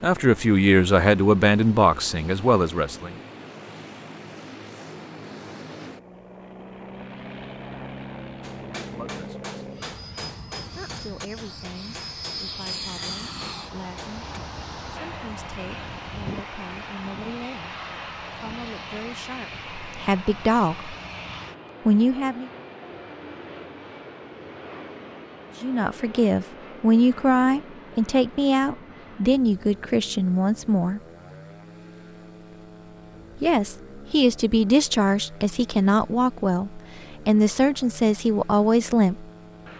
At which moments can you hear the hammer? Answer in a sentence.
The hammer can be heard from 8.4 to 14.2 s.